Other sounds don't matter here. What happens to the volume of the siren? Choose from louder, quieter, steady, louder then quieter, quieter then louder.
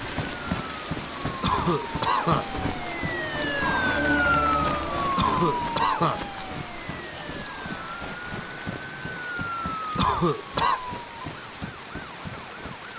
louder then quieter.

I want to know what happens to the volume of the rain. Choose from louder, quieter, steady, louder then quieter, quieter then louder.
quieter.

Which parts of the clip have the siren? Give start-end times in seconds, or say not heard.
0.1-12.9.